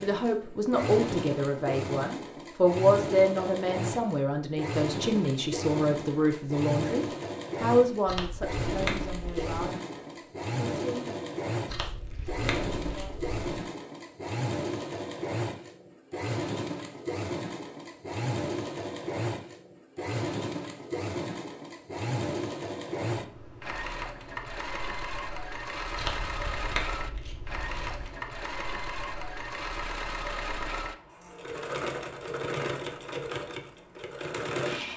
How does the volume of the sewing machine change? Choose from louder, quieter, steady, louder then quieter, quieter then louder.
steady.